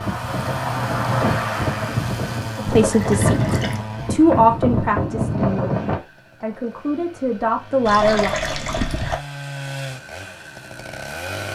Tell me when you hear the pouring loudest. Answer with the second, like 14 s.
8 s.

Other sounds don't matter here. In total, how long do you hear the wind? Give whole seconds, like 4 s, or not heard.
6 s.